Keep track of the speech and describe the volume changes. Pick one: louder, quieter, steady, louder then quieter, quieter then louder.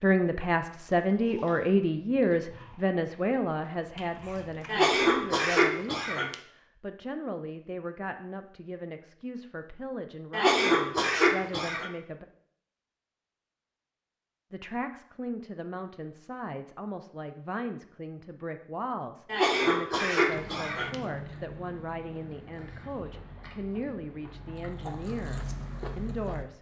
quieter.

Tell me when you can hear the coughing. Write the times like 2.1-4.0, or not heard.
4.7-6.3, 10.3-11.9, 19.3-20.9.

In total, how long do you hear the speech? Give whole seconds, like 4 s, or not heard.
24 s.